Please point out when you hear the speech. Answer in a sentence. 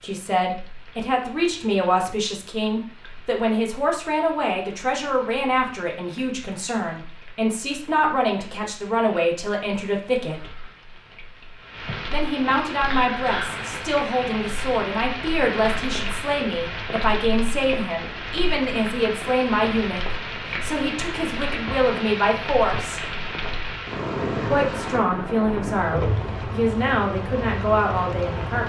You can hear the speech from 0.0 to 10.7 s, from 12.1 to 23.0 s and from 24.4 to 28.6 s.